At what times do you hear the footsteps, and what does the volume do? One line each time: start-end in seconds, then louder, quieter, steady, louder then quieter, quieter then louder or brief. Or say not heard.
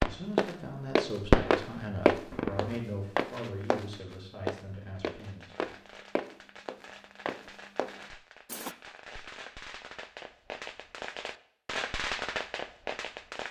0.3-8.8 quieter.